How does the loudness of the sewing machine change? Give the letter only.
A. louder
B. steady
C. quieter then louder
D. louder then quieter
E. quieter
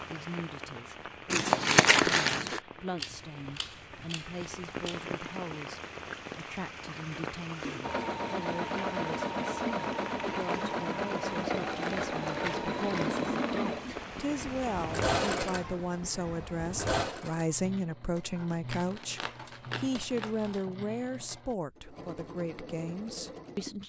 E.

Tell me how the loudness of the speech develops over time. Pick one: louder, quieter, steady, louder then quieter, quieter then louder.
louder.